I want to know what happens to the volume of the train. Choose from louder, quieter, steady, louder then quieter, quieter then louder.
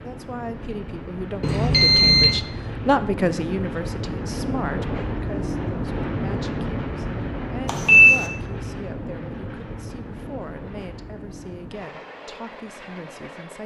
louder then quieter.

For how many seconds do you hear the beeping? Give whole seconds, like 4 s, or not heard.
2 s.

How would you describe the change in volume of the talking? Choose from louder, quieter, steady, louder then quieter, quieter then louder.
quieter.